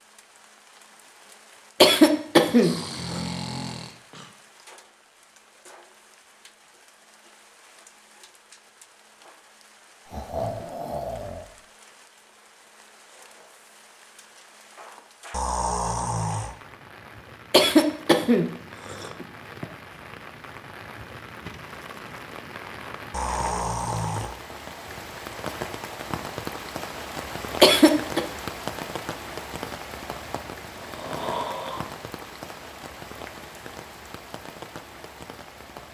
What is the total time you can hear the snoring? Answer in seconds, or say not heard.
7 s.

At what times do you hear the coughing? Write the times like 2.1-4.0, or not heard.
1.8-3.2, 17.5-19.6, 27.6-28.2.